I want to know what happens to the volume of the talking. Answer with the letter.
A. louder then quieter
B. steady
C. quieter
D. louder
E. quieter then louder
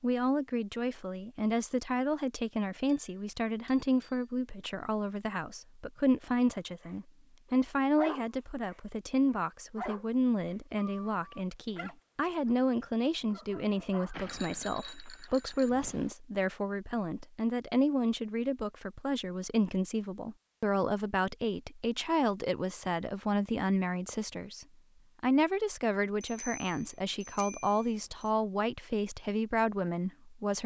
B.